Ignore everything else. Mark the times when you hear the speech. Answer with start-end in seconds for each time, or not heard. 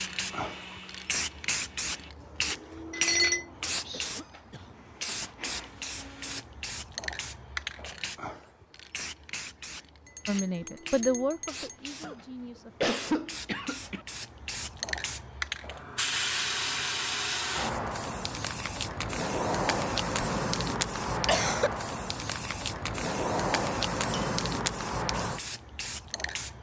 10.2-12.8.